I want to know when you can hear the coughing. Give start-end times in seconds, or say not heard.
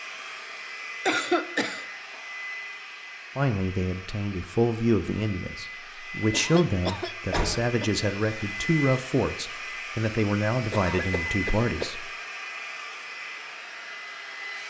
1.1-1.9, 6.3-7.9, 10.7-11.9.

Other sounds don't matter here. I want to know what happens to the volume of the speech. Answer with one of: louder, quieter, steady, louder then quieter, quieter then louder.
steady.